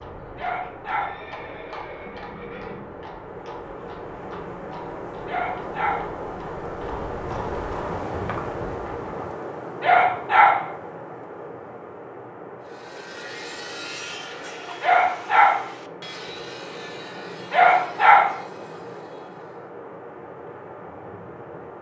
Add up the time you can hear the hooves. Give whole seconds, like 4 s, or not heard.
9 s.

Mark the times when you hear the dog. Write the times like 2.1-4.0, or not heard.
0.3-1.2, 5.2-6.2, 9.8-10.7, 14.8-15.7, 17.5-18.4.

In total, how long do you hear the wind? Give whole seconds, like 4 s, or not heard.
22 s.